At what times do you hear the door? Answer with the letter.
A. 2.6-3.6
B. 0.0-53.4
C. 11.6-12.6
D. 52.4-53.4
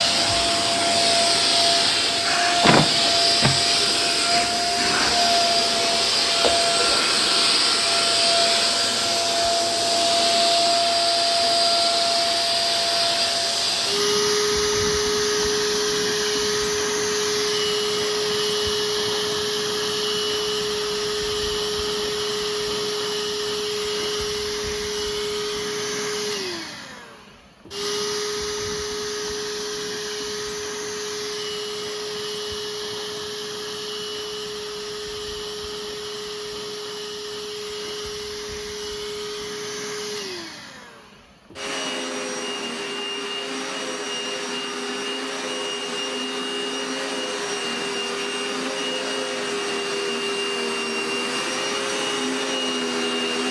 A.